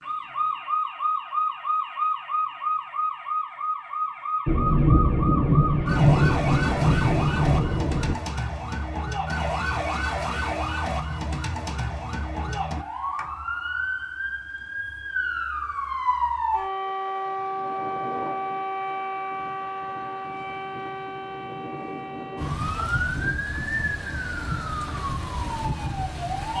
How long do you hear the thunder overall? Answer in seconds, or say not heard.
4 s.